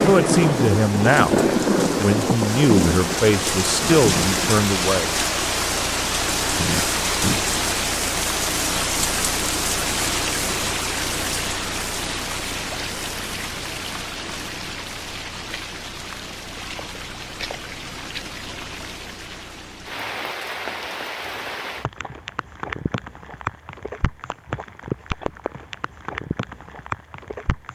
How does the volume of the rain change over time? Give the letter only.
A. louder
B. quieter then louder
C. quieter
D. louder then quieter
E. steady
C.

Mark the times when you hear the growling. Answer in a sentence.
The growling can be heard from 6.5 to 7.5 s.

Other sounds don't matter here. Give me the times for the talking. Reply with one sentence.
The talking can be heard from 0.0 to 5.2 s.